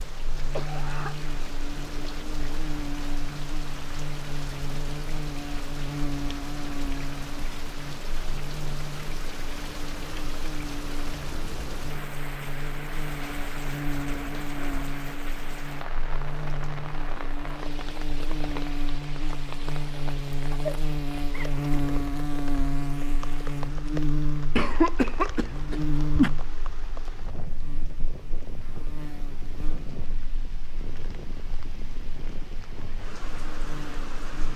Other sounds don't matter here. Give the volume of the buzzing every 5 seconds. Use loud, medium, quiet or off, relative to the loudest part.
medium, medium, medium, medium, loud, medium, quiet.